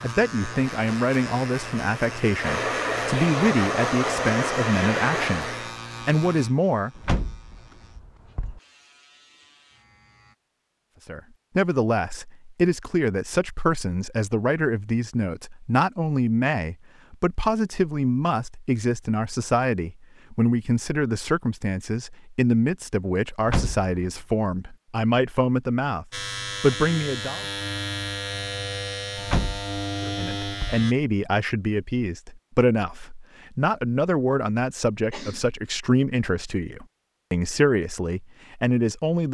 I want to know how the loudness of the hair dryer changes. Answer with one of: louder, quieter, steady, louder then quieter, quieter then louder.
louder.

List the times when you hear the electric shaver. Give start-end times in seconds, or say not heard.
0.0-10.3, 26.1-30.9.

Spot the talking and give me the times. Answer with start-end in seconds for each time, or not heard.
0.0-6.9, 11.1-27.4, 30.0-39.2.